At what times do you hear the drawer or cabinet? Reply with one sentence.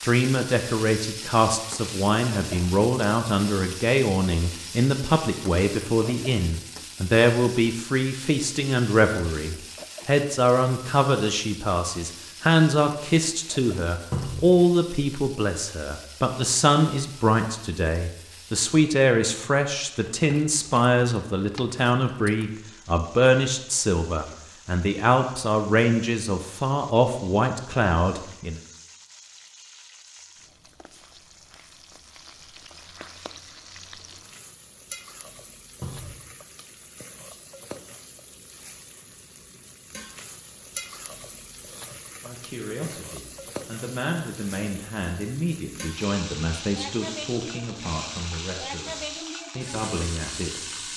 You can hear the drawer or cabinet from 14.1 to 14.5 s and from 35.8 to 36.2 s.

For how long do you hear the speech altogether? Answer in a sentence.
You can hear the speech for 37 seconds altogether.